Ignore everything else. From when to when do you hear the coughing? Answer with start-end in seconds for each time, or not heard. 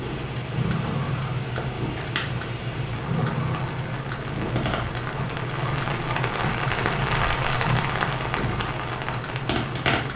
not heard.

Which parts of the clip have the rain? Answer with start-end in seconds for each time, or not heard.
0.0-10.0.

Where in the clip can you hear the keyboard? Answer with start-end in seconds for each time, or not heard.
not heard.